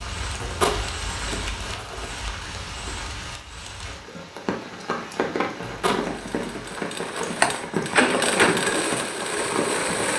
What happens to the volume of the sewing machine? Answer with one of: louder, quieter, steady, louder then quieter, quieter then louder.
louder then quieter.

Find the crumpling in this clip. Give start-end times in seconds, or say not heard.
0.4-2.1, 5.6-6.7.